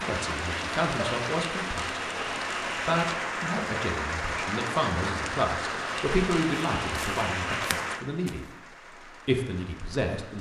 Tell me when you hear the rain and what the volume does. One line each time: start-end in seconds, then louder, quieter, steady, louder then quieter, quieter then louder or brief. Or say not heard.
0.0-10.3 quieter.